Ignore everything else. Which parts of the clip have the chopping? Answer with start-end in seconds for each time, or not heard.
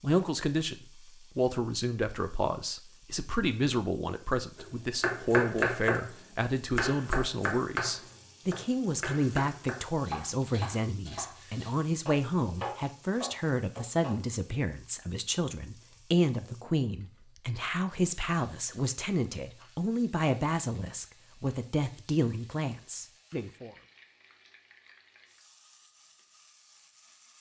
4.5-14.2.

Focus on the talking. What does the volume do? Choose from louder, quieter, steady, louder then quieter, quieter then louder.
steady.